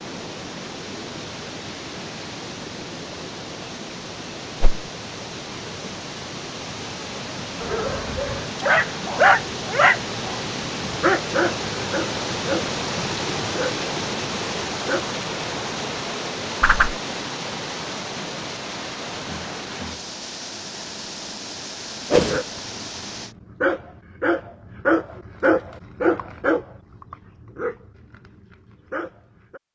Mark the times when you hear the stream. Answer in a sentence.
The stream can be heard from 0.0 to 23.4 s.